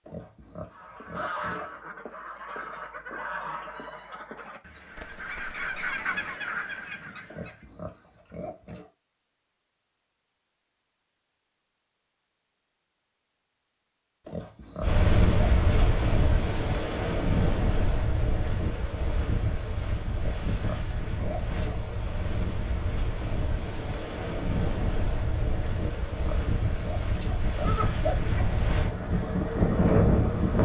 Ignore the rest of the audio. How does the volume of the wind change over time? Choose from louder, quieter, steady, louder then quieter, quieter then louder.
quieter then louder.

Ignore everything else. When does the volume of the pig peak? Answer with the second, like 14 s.
28 s.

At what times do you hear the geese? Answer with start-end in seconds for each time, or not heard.
0.7-7.7.